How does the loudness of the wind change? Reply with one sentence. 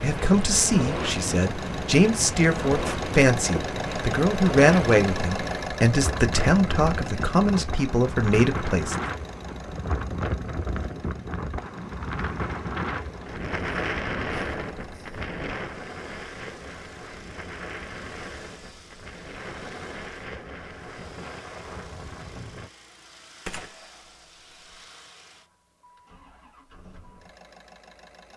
The volume of the wind goes down.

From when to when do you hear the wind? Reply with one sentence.
You can hear the wind from 0.0 to 22.7 s.